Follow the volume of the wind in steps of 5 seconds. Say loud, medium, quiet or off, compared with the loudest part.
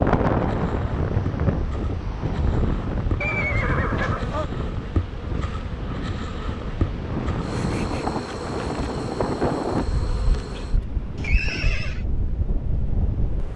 loud, loud, medium.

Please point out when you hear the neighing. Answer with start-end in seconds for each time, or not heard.
3.2-4.5, 11.2-12.1.